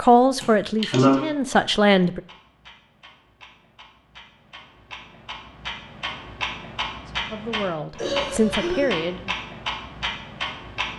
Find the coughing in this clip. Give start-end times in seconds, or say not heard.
0.4-1.2, 8.0-9.1.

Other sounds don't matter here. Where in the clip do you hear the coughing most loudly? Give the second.
1 s.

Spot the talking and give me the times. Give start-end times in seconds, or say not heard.
0.0-2.2, 7.0-9.3.